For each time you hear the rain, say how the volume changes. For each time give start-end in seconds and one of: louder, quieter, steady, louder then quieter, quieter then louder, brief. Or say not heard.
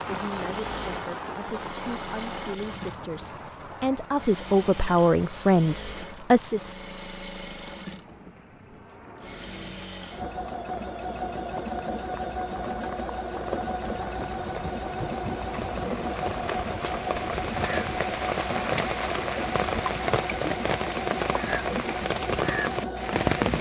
0.0-23.5 quieter then louder.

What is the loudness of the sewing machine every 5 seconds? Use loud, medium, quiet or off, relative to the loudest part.
medium, medium, loud, loud, loud.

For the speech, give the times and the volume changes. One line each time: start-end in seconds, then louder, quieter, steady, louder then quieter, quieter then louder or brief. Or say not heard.
0.1-6.7 louder.